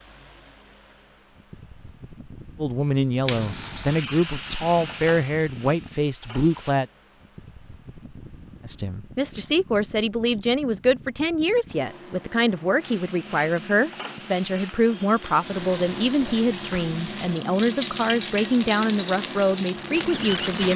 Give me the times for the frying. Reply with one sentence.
You can hear the frying from 3.2 to 6.8 s and from 12.8 to 20.7 s.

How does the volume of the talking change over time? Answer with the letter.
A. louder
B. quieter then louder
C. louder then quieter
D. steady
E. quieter
D.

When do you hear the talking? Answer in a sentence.
The talking can be heard from 2.5 to 6.8 s and from 8.7 to 20.7 s.